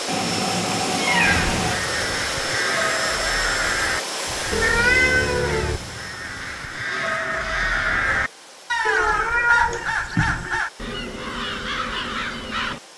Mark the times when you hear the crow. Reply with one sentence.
You can hear the crow from 1.2 to 12.8 s.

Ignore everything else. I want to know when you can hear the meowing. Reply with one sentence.
The meowing can be heard from 0.1 to 1.8 s, from 4.5 to 5.8 s and from 8.8 to 10.6 s.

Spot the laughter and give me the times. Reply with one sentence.
You can't hear the laughter here.